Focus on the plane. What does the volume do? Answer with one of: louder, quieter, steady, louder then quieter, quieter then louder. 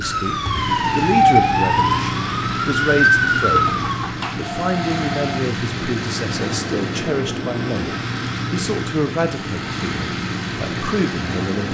steady.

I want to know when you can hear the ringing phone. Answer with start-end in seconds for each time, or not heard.
3.5-5.4.